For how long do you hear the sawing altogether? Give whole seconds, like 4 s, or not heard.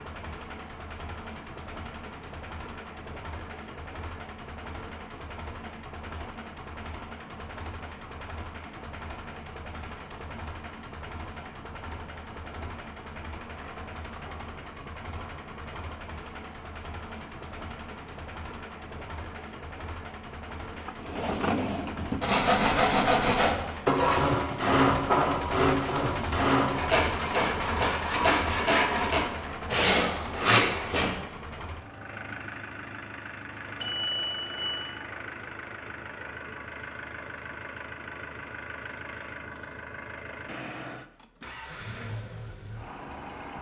9 s.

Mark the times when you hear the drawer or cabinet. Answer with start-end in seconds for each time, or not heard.
20.8-22.2.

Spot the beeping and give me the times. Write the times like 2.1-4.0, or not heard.
33.8-34.9.